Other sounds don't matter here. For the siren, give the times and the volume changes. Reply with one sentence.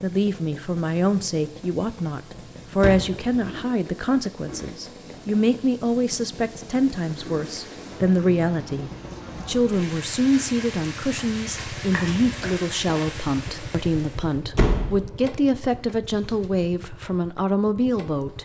You can't hear the siren here.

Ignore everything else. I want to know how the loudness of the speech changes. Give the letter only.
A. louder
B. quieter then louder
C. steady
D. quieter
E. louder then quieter
C.